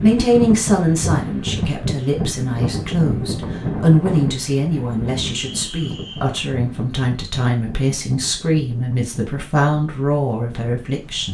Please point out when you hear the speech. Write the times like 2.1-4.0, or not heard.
0.0-11.3.